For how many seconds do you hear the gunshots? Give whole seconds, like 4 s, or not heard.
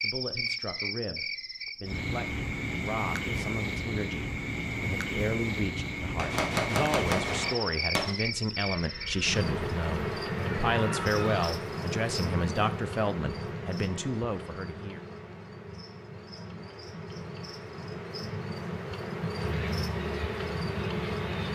2 s.